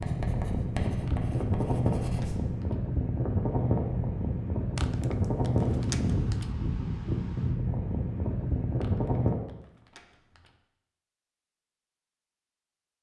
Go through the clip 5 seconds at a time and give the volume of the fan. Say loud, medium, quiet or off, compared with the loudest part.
loud, loud, off.